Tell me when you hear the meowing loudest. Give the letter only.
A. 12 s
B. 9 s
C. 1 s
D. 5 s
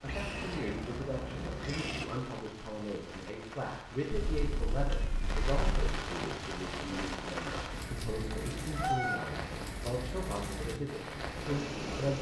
B.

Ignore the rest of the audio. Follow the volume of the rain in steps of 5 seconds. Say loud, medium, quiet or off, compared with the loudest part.
medium, loud, loud.